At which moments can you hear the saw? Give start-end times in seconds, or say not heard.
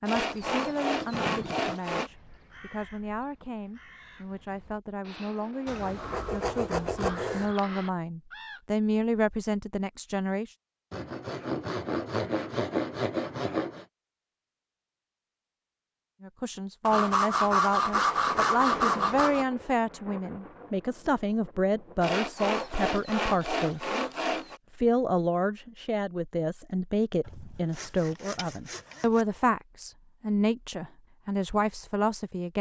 0.1-2.1, 5.7-7.5, 10.9-13.8, 16.9-19.4, 22.0-24.6, 27.2-29.2.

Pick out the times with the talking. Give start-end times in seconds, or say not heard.
0.0-10.6, 16.2-23.9, 24.8-32.5.